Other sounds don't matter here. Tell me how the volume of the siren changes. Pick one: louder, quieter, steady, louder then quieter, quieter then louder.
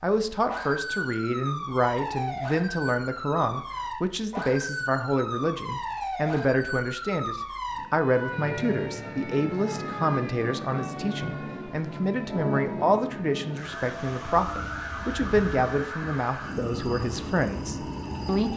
steady.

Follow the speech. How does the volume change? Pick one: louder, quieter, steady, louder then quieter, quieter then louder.
steady.